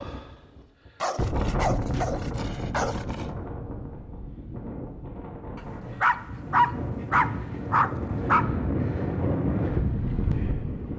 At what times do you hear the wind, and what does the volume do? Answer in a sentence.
You can hear the wind from 0.0 to 10.9 s, getting quieter then louder.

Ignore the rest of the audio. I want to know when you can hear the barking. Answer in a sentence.
You can hear the barking from 1.0 to 3.3 s and from 5.5 to 8.4 s.